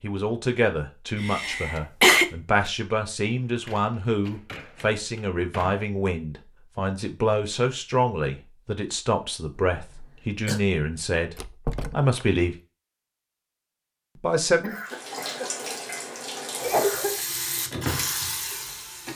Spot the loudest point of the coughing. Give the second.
2 s.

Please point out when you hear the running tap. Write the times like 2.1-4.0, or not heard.
14.8-19.1.